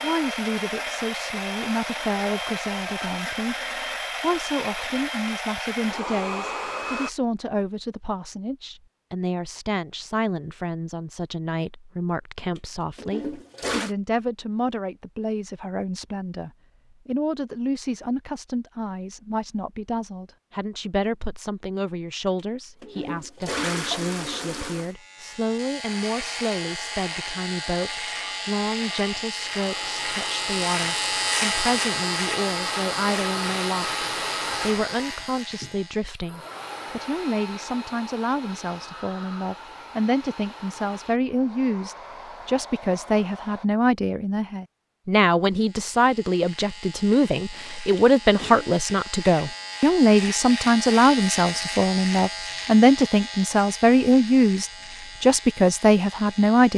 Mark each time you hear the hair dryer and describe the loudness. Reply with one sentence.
The hair dryer can be heard from 0.0 to 7.1 s, at a steady volume; and from 25.8 to 43.6 s, getting louder then quieter.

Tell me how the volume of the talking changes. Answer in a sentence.
The volume of the talking goes up.